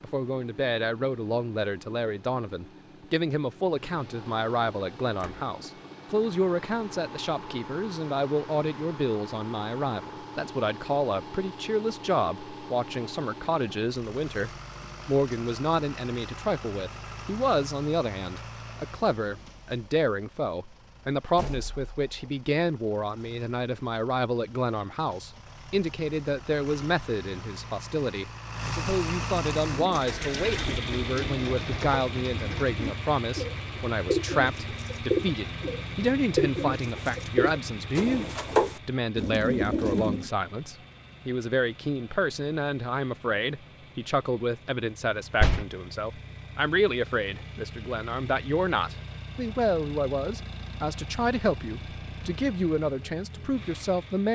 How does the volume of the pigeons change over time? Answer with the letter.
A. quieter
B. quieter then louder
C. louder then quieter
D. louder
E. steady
D.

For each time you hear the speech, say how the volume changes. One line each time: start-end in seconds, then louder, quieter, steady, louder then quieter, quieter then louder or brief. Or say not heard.
0.0-54.3 steady.